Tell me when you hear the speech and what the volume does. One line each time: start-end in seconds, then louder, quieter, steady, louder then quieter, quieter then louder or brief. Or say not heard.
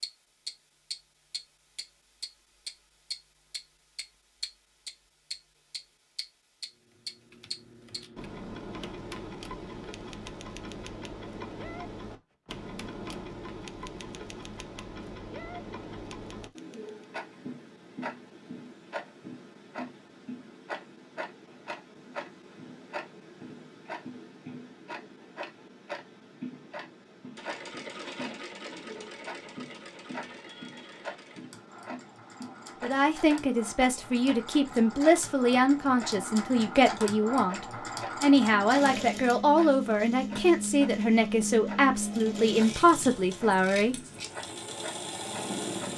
32.8-44.0 steady.